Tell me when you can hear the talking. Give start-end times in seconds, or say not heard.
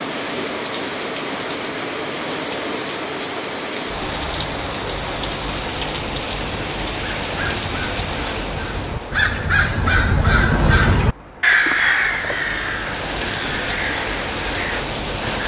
not heard.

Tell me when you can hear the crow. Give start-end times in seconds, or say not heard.
6.8-15.4.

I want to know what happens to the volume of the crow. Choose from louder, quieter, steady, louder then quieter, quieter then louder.
louder then quieter.